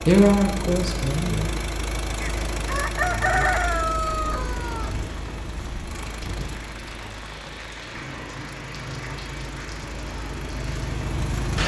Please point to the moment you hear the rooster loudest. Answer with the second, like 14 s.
3 s.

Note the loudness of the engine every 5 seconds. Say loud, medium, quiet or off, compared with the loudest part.
loud, medium, loud.